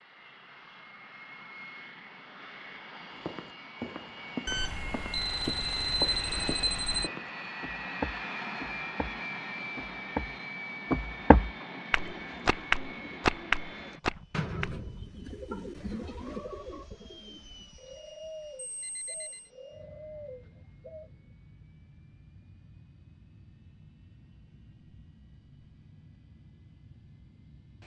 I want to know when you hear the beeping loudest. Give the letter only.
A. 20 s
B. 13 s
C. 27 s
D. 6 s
D.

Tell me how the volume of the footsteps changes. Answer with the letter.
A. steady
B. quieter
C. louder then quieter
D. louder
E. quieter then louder
D.